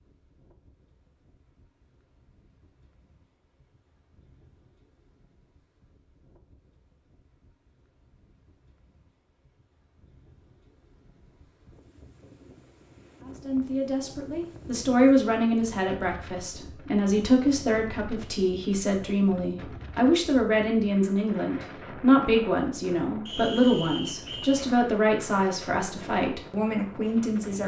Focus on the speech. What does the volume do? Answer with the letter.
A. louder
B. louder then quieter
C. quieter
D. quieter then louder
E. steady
E.